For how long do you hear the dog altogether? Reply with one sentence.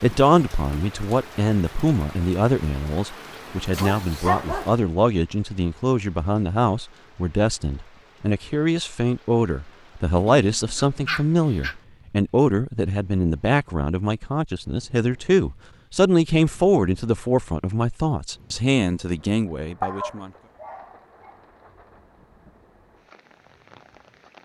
The dog can be heard for 4 seconds in total.